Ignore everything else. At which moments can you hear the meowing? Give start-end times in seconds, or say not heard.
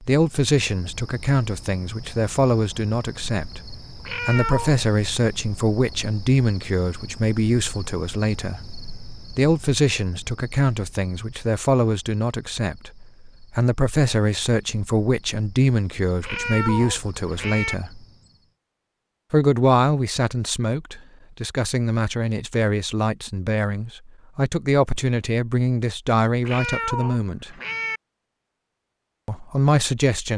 4.0-4.8, 16.2-17.8, 26.4-28.0.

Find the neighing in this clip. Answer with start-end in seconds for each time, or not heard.
not heard.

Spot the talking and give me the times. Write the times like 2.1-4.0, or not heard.
0.0-18.0, 19.3-27.6, 29.2-30.3.